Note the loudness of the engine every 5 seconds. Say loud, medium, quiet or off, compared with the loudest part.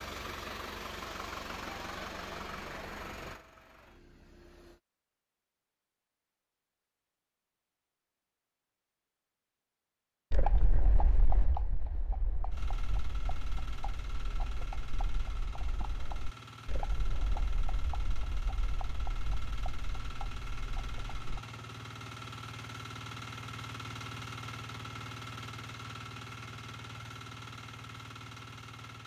loud, off, medium, medium, loud, loud.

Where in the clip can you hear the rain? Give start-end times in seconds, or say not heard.
not heard.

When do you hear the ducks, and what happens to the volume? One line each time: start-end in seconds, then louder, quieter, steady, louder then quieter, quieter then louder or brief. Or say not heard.
not heard.